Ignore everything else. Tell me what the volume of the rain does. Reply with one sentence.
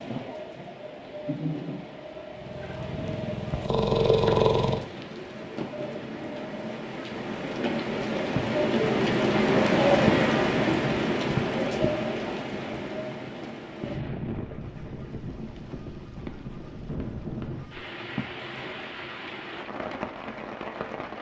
The loudness of the rain goes up, then down.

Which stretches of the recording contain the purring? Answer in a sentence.
You can hear the purring from 2.3 to 4.8 s.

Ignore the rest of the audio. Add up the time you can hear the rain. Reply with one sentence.
You can hear the rain for 21 seconds altogether.